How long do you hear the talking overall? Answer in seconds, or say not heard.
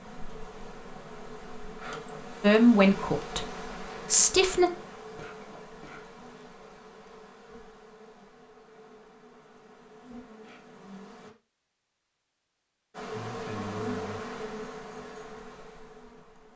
2 s.